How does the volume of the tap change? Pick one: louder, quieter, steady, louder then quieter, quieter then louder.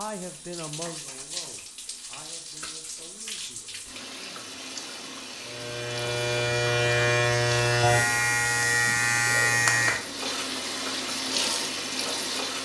louder.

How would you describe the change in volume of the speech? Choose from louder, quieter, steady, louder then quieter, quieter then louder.
quieter.